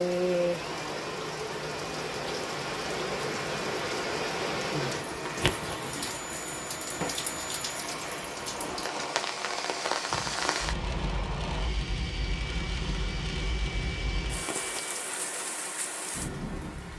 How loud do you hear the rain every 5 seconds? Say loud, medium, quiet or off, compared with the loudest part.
loud, loud, loud, medium.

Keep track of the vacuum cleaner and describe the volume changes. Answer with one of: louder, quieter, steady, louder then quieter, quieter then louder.
steady.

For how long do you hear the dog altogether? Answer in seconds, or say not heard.
not heard.